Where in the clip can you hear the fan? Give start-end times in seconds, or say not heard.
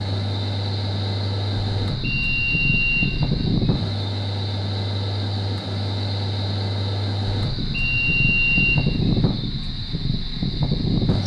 0.0-11.2.